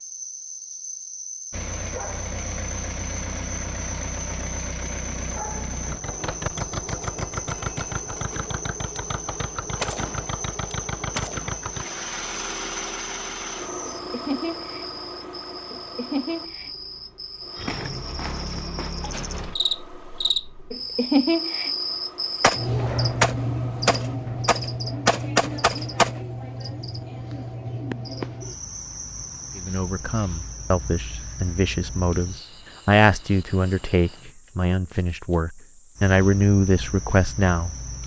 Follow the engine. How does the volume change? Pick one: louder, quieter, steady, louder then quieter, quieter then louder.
quieter.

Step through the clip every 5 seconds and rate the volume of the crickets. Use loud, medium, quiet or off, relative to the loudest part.
medium, medium, medium, medium, loud, medium, quiet, quiet.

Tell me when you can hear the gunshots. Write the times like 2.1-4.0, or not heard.
8.3-9.0, 9.8-11.6, 22.4-26.2.